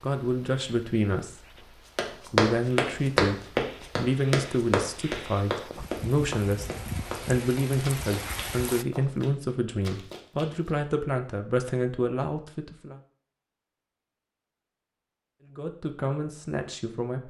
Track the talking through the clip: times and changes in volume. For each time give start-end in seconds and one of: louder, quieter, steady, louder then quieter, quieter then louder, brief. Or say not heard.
0.0-13.0 steady
15.4-17.2 brief.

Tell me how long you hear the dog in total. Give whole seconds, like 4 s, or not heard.
not heard.